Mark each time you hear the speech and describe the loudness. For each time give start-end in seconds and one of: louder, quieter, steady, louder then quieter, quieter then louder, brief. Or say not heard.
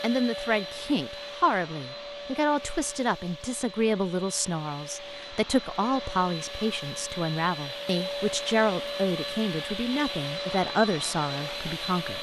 0.0-12.1 steady.